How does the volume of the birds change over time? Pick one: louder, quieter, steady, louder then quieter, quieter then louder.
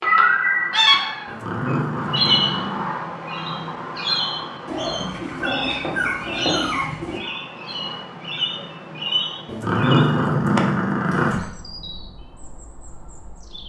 quieter.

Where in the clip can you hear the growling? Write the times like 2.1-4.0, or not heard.
1.2-2.9, 4.7-7.2, 9.4-11.4.